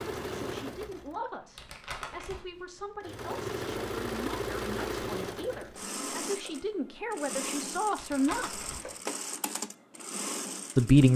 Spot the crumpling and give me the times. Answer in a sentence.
You can hear the crumpling from 1.6 to 2.5 s and from 8.0 to 9.0 s.